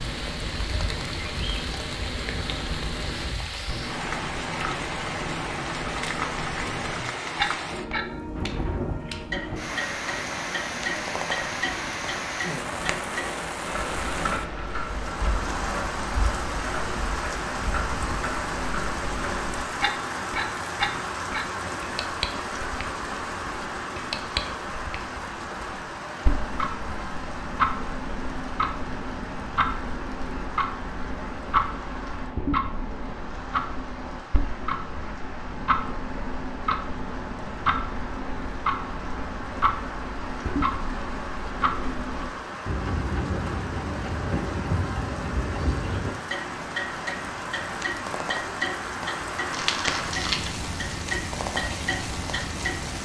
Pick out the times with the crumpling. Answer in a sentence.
The crumpling can be heard from 49.5 to 50.6 s.